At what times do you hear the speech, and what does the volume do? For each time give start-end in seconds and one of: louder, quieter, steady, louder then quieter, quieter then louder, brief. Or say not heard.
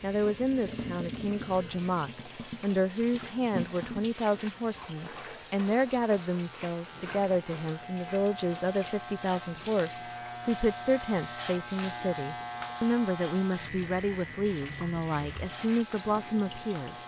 0.0-17.0 steady.